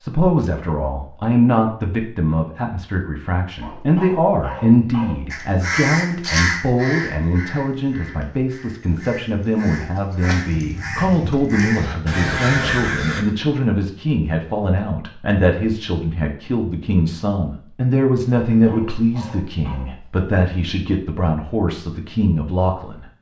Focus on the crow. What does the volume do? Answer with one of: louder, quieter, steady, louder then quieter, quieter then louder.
quieter then louder.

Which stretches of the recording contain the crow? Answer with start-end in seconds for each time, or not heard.
5.3-13.2.